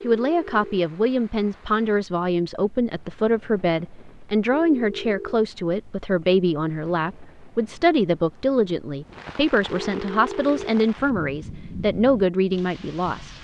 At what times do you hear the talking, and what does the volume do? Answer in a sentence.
The talking can be heard from 0.0 to 13.3 s, at a steady volume.